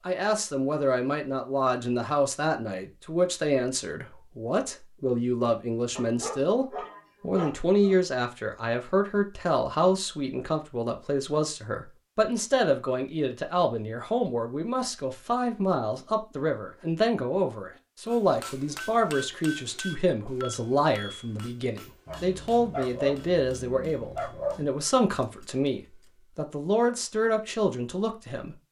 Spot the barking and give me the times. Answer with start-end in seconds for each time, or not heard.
6.0-8.0, 22.1-24.6.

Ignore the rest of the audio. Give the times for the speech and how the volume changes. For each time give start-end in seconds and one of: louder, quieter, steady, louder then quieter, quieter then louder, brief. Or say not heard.
0.1-28.6 steady.